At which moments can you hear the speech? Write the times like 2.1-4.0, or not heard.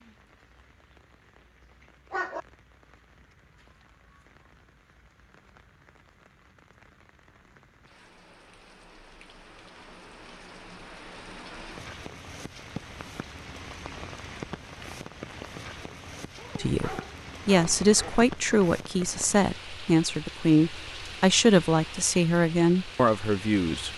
16.6-23.9.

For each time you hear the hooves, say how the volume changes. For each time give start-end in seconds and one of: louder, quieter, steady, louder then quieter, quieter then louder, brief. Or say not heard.
not heard.